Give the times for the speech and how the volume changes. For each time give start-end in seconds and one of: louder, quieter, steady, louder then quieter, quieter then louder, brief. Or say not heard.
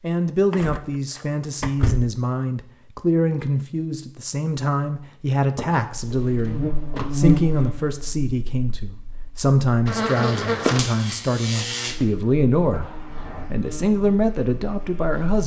0.0-15.4 steady.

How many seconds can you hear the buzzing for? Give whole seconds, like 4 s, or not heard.
9 s.